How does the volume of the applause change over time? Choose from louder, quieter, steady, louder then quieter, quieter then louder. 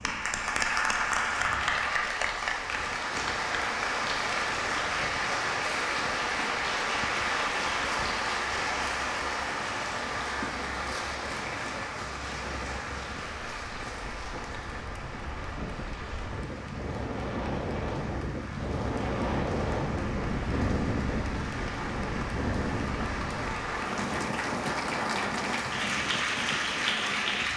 quieter then louder.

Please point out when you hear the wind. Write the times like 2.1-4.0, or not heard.
0.0-27.5.